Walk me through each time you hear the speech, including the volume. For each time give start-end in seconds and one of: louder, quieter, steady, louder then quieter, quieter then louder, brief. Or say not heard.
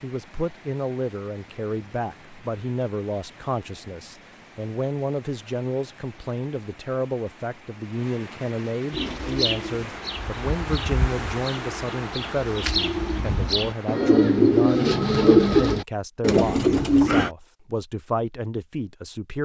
0.0-19.4 steady.